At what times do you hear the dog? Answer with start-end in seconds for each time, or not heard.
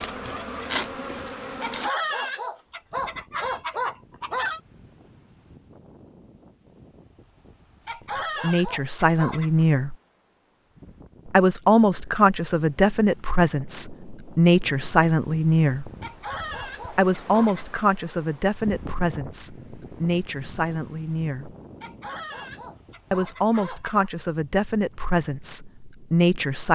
1.6-4.6, 7.8-9.7, 16.0-17.8, 21.8-24.1.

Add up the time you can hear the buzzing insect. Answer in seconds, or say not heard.
2 s.